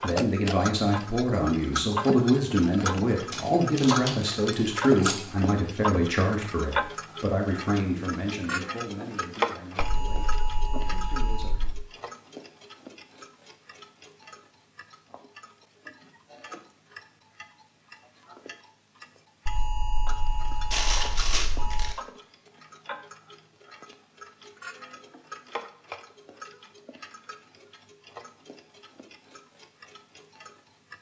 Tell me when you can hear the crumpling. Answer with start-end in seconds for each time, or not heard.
3.3-5.3, 20.7-21.9.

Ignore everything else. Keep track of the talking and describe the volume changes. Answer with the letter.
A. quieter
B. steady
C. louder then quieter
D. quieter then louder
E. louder
A.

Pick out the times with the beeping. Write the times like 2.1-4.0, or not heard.
9.8-11.8, 19.4-21.9.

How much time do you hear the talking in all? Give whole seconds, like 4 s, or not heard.
12 s.